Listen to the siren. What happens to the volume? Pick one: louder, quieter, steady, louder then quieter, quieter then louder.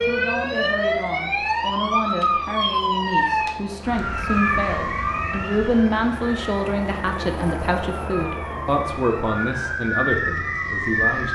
quieter then louder.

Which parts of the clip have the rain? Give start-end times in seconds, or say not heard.
not heard.